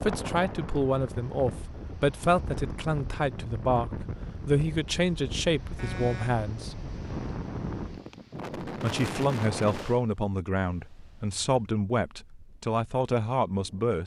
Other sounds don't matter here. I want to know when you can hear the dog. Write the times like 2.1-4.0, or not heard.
not heard.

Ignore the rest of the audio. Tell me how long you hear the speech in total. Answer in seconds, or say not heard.
12 s.